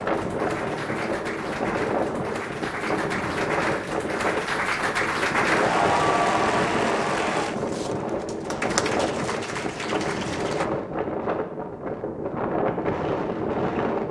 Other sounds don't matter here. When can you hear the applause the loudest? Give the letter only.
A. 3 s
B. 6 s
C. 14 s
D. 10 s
B.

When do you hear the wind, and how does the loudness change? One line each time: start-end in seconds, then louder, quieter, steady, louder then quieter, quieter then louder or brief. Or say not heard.
0.0-14.0 steady.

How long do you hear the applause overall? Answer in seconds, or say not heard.
11 s.